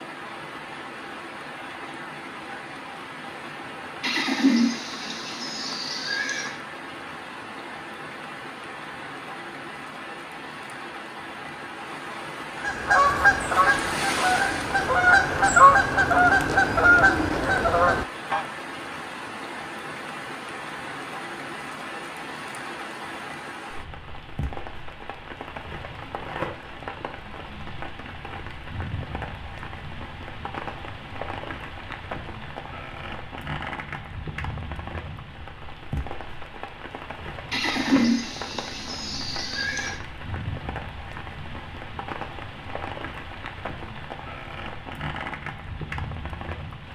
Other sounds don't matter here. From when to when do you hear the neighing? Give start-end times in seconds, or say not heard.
4.0-6.5, 37.5-40.0.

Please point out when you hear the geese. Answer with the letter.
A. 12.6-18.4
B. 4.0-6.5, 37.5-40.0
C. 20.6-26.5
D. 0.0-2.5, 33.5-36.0
A.